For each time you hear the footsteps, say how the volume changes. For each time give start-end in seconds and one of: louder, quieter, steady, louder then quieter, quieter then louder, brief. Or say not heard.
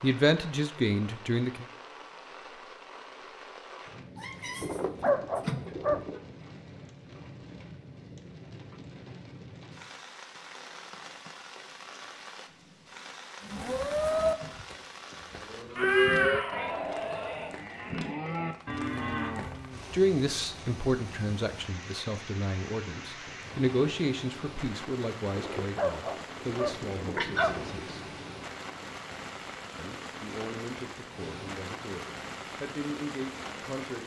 not heard.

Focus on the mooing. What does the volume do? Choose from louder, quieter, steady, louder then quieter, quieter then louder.
quieter then louder.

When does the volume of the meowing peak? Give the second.
16 s.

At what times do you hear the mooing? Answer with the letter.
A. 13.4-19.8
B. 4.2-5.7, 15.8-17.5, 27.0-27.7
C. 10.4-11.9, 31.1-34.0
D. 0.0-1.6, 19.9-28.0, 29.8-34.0
A.